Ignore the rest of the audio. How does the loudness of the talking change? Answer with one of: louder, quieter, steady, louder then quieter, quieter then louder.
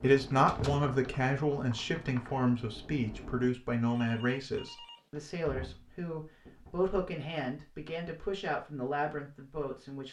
quieter.